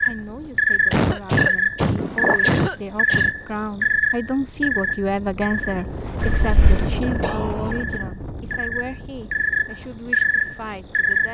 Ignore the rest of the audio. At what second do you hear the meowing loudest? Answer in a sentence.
The loudest moment of the meowing is at 2 seconds.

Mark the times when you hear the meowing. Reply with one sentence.
The meowing can be heard from 1.9 to 2.4 s and from 6.2 to 7.0 s.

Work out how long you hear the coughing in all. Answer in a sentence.
The coughing can be heard for 3 seconds in total.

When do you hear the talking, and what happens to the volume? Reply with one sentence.
You can hear the talking from 0.0 to 11.2 s, getting louder then quieter.